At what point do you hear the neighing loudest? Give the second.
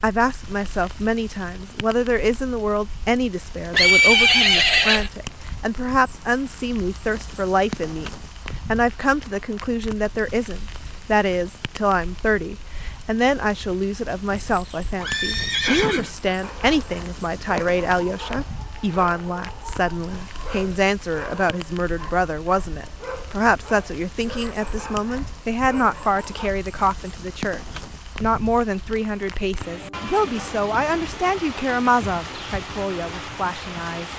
4 s.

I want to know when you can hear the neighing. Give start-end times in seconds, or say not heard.
3.7-5.1, 14.3-16.1, 32.0-32.7.